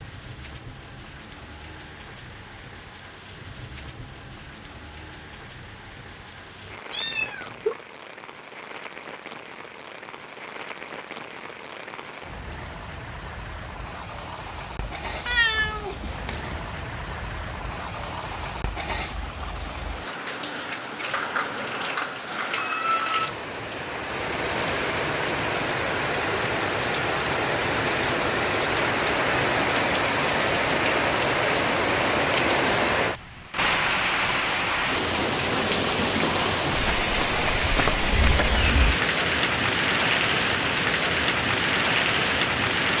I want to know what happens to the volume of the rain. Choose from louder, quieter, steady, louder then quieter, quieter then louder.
louder.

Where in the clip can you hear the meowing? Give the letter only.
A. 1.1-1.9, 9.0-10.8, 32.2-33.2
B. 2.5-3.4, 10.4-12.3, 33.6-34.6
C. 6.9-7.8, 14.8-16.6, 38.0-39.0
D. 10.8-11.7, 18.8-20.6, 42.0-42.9
C.